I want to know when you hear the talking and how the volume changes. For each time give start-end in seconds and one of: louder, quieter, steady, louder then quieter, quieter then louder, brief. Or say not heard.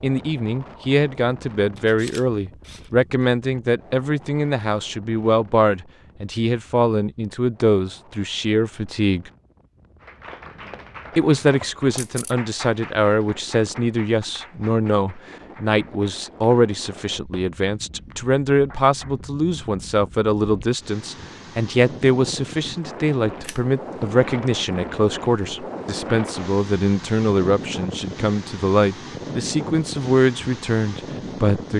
0.0-9.3 steady
11.2-31.7 steady.